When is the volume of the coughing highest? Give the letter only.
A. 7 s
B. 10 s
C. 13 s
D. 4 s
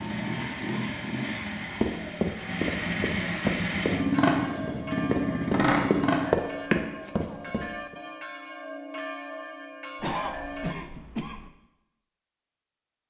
B.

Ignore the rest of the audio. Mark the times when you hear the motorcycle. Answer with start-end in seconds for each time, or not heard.
0.0-6.3.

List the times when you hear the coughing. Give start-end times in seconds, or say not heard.
10.0-11.5.